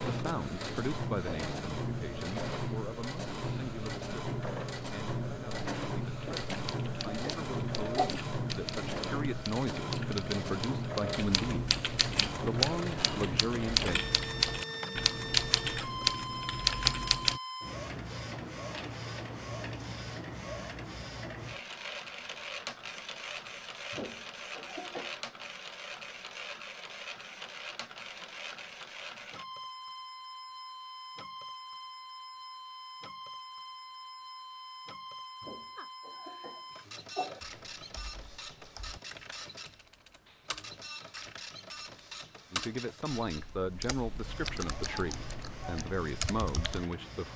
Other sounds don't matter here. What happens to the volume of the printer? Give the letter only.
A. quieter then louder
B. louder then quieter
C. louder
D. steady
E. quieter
E.